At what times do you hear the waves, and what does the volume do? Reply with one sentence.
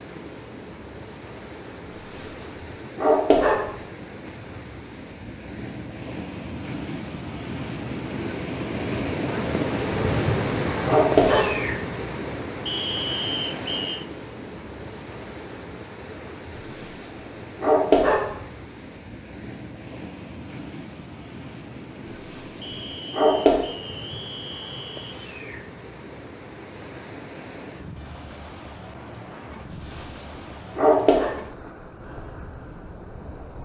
You can hear the waves from 0.0 to 33.6 s, getting louder then quieter.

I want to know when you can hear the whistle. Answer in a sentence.
You can hear the whistle from 12.7 to 14.1 s and from 22.6 to 25.2 s.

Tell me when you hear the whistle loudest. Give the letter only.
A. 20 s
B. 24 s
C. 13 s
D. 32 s
C.